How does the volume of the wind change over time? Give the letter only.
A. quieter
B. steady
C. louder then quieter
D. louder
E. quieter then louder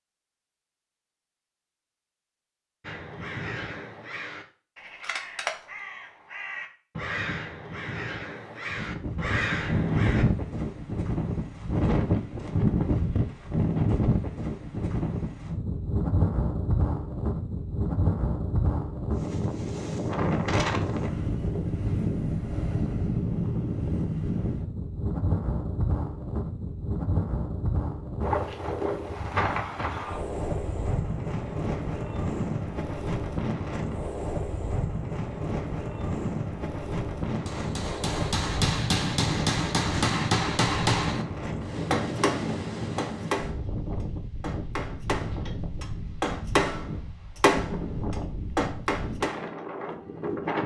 A.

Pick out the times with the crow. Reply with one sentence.
The crow can be heard from 2.8 to 10.2 s.